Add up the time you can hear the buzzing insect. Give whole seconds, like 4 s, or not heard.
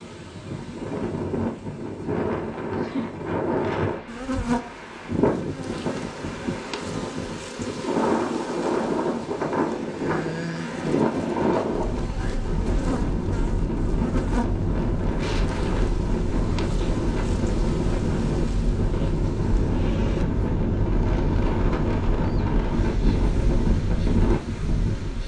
21 s.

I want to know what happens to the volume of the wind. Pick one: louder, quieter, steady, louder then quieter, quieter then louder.
steady.